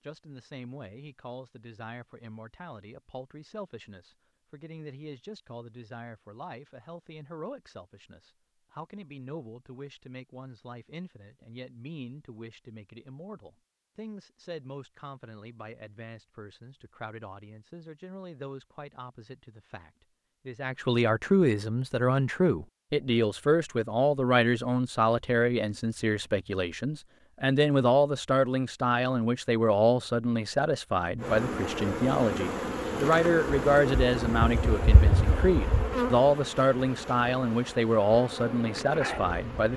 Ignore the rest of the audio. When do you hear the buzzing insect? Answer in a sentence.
You can hear the buzzing insect from 31.2 to 39.7 s.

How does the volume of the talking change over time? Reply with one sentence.
The loudness of the talking goes up.